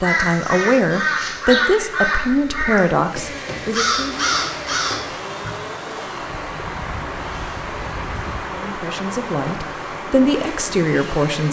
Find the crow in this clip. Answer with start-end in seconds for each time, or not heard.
0.0-5.5.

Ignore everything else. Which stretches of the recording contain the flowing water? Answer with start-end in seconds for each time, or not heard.
4.1-11.4.